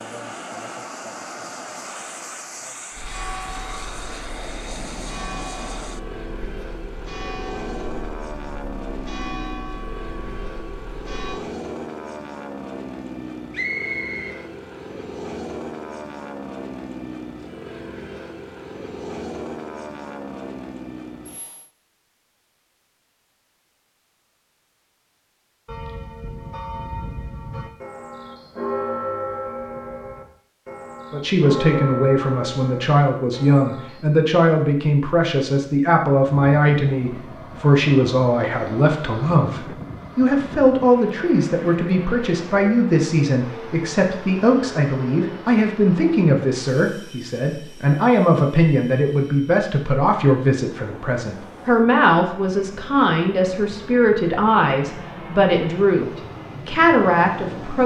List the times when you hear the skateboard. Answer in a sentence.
The skateboard can't be heard in this clip.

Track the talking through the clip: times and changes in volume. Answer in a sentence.
You can hear the talking from 31.1 to 57.8 s, at a steady volume.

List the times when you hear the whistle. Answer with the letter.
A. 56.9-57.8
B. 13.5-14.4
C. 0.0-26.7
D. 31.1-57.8
B.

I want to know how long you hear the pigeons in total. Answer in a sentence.
The pigeons can't be heard in this clip.